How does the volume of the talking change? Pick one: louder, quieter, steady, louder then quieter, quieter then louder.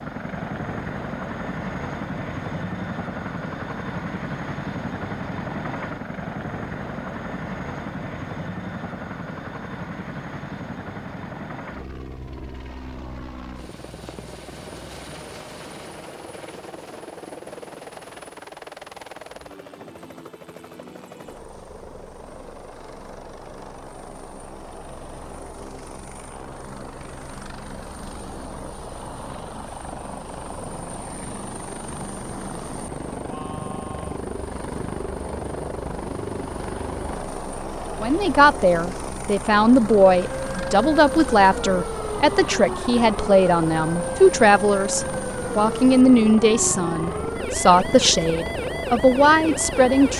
steady.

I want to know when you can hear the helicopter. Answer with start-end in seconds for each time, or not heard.
0.0-50.1.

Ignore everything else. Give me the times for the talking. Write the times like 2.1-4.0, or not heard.
38.0-50.1.